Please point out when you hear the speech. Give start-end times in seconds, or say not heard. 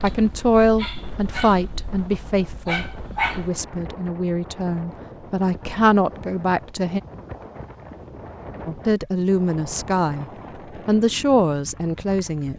0.0-7.0, 8.7-10.2, 10.8-12.5.